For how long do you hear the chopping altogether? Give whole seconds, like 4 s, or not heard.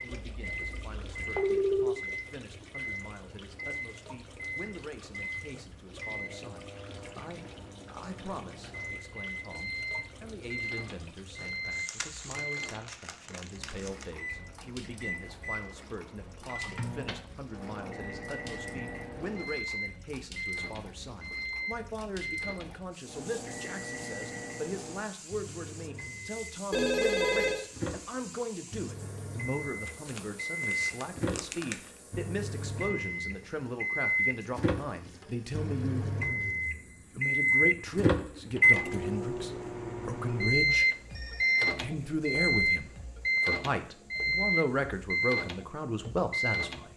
not heard.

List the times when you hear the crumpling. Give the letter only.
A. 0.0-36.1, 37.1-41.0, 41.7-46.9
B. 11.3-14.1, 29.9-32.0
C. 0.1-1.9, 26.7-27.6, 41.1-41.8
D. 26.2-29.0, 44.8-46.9
B.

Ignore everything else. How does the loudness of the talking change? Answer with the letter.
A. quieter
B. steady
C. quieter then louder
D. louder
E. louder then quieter
D.